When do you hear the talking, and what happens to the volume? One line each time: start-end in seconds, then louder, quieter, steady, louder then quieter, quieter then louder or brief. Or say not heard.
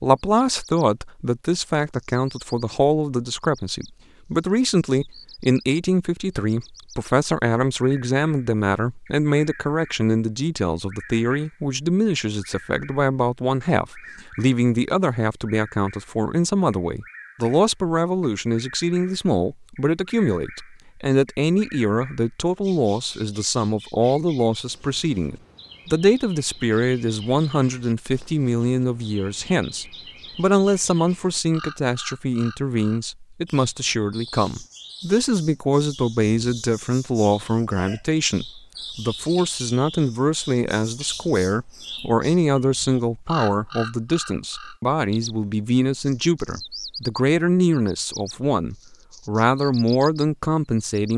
0.0-51.1 steady.